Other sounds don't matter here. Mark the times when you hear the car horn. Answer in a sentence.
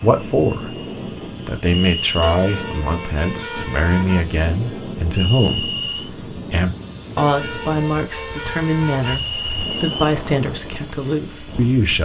You can hear the car horn from 2.2 to 4.2 s and from 7.2 to 9.2 s.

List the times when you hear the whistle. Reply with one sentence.
The whistle can be heard from 1.6 to 2.4 s, from 5.1 to 6.1 s and from 9.0 to 10.2 s.